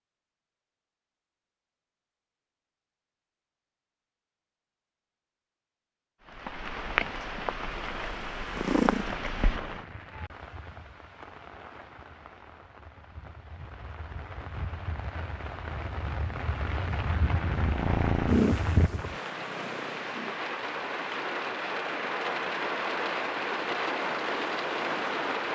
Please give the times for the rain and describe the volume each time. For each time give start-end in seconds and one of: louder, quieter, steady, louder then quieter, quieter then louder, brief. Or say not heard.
6.2-25.5 quieter then louder.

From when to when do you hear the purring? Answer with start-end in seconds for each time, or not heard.
7.8-10.2, 17.4-20.4.